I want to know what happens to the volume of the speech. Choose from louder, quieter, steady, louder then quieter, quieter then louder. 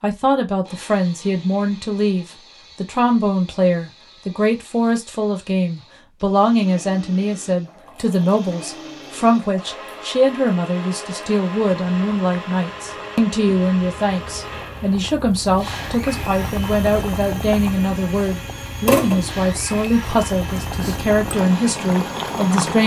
steady.